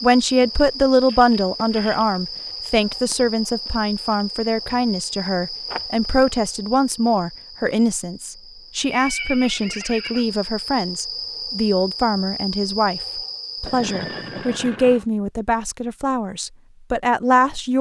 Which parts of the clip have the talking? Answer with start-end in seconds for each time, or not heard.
0.0-17.7.